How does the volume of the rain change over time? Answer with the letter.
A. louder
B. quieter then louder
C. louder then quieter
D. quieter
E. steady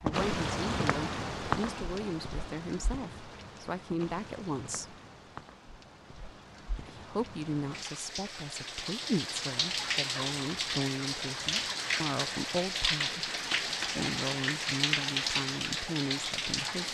B.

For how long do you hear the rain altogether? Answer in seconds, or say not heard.
17 s.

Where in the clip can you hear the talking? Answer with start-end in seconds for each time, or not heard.
0.0-5.0, 6.8-16.9.